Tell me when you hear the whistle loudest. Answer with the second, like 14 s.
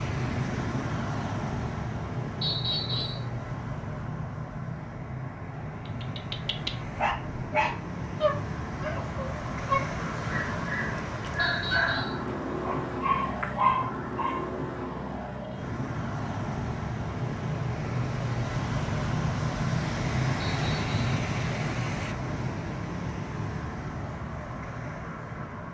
3 s.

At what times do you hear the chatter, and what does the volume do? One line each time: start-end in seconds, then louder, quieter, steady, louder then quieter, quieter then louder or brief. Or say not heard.
not heard.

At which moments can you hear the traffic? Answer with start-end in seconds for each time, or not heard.
0.0-25.6.